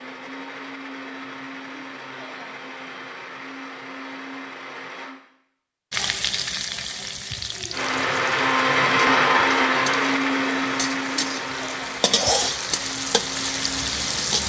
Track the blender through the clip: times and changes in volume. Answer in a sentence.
The blender can be heard from 0.0 to 5.2 s, at a steady volume; and from 7.7 to 14.4 s, getting quieter.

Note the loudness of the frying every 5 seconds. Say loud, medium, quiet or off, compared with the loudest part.
off, loud, loud.